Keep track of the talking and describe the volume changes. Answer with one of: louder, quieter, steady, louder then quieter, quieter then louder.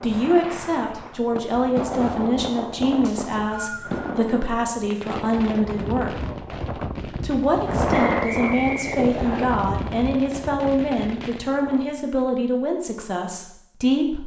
steady.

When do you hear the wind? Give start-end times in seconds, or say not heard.
0.0-12.1.